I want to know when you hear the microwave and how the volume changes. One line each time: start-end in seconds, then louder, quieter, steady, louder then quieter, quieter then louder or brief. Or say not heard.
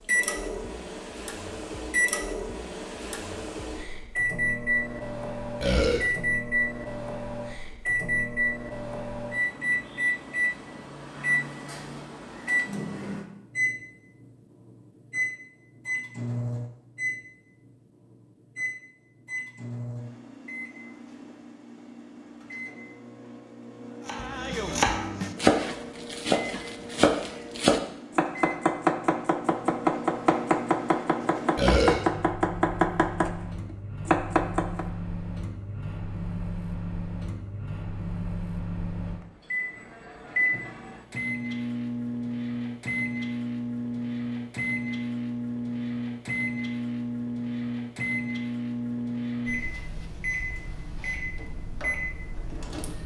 0.0-53.0 quieter then louder.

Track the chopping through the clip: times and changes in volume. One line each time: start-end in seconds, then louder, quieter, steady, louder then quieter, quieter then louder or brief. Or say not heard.
24.1-34.9 steady.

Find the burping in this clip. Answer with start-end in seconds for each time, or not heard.
5.6-6.0, 31.6-32.0.